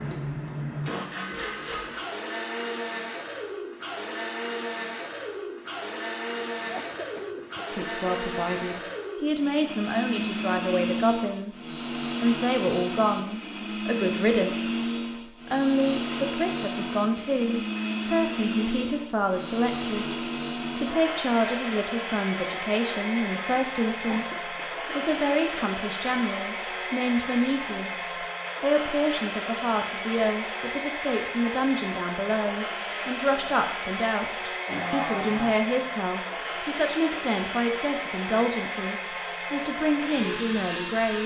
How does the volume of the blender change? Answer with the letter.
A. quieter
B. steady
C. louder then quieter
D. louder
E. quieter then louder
B.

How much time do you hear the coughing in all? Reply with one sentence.
You can hear the coughing for 4 seconds altogether.